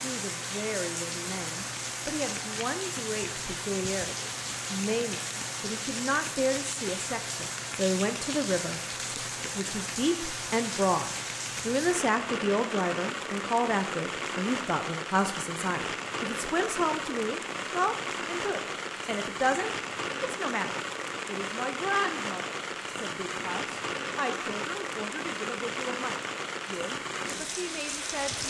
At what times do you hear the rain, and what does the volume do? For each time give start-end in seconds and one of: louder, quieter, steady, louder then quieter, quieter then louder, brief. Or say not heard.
0.0-28.4 steady.